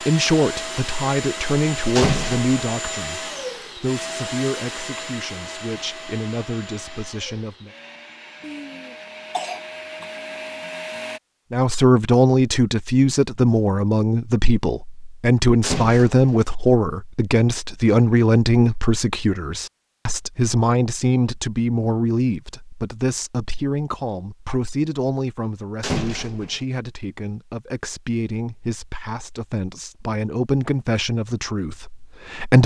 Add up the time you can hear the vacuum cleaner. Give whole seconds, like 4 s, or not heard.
11 s.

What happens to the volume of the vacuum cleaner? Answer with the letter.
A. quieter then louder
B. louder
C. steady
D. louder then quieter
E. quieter
A.